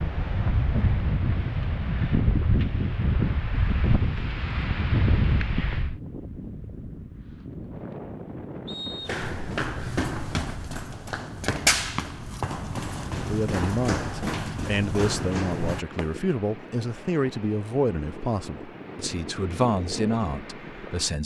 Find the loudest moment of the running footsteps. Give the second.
12 s.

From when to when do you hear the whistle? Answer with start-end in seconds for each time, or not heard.
8.7-9.2.